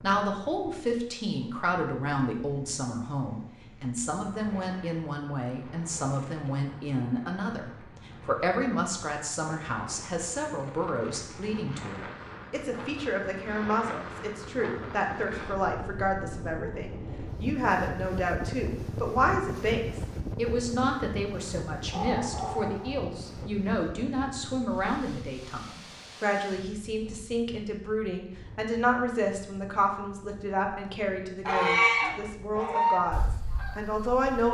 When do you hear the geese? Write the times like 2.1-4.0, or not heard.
31.4-34.1.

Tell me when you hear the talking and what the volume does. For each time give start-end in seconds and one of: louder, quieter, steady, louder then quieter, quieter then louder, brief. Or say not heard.
0.0-34.4 steady.